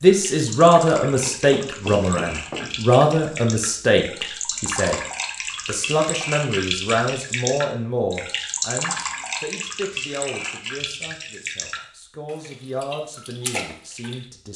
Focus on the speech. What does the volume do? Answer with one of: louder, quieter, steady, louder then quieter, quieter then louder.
quieter.